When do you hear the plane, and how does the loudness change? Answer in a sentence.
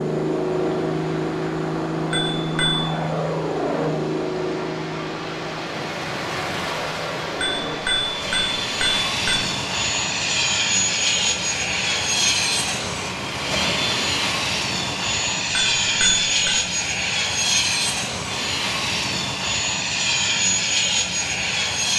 You can hear the plane from 0.0 to 21.9 s, getting quieter then louder.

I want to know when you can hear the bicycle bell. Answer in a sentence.
The bicycle bell can be heard from 2.1 to 3.0 s, from 7.4 to 9.4 s and from 15.5 to 16.6 s.